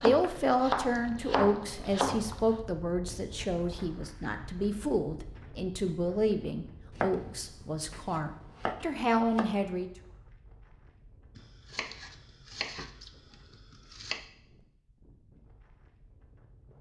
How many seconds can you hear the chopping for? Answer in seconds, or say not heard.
8 s.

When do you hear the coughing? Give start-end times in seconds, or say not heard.
not heard.